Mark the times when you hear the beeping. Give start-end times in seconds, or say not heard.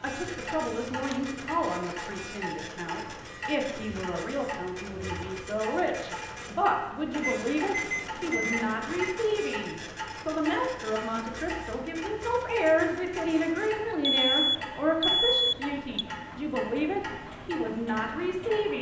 7.2-9.2, 14.0-16.1.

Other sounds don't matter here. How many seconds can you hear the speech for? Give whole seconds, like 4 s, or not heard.
19 s.